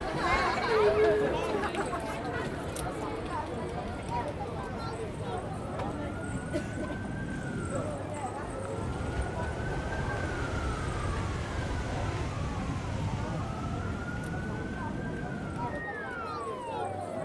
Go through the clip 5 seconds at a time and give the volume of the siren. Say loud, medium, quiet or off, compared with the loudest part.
medium, loud, loud, loud.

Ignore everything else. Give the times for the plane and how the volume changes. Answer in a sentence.
You can't hear the plane here.